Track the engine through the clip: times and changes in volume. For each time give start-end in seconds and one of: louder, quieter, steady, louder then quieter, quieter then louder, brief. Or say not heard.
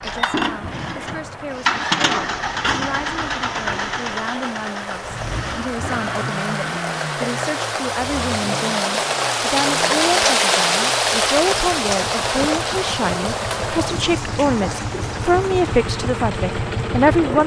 0.0-17.4 quieter then louder.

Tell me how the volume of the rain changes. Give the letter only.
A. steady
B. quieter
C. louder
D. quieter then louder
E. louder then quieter
E.